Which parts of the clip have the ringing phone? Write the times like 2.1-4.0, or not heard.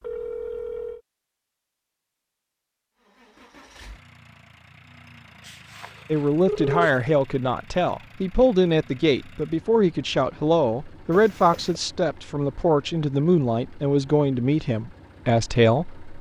0.0-1.0, 5.5-7.1, 11.1-11.8.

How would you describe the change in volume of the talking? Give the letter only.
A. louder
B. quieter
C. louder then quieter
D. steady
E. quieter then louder
D.